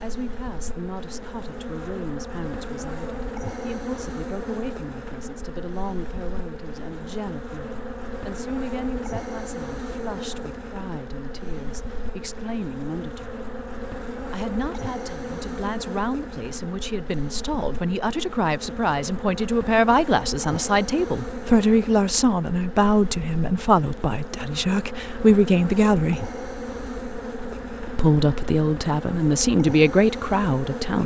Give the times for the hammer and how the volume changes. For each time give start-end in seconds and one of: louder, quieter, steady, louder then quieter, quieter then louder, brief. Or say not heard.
not heard.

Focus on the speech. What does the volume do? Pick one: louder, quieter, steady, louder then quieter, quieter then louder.
louder.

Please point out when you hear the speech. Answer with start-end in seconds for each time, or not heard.
0.0-13.3, 14.3-26.3, 27.9-31.0.